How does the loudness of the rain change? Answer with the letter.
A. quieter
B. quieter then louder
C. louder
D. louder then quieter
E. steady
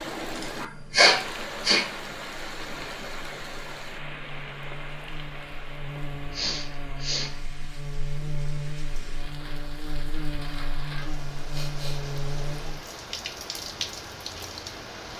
B.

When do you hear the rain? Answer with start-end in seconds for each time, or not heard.
0.0-15.1.